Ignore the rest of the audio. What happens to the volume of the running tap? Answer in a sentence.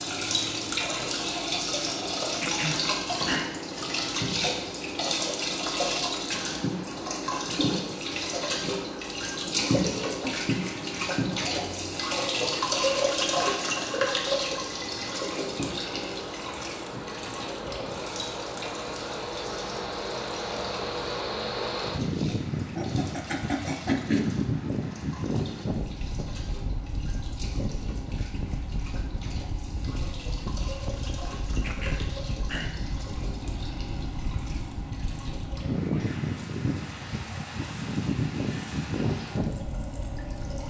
The loudness of the running tap goes down.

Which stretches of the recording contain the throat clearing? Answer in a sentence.
The throat clearing can be heard from 2.4 to 3.5 s, from 22.7 to 24.2 s and from 31.6 to 32.8 s.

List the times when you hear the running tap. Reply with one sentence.
You can hear the running tap from 0.0 to 40.6 s.